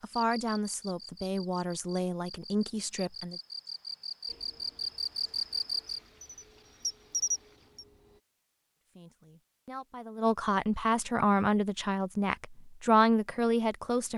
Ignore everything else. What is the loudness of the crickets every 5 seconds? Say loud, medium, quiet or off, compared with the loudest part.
medium, loud, off.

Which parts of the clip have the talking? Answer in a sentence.
The talking can be heard from 0.0 to 3.4 s and from 8.9 to 14.1 s.